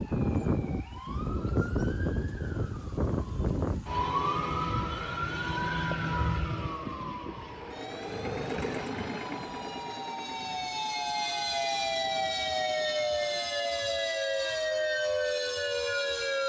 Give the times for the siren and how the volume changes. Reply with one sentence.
The siren can be heard from 0.0 to 16.4 s, getting quieter then louder.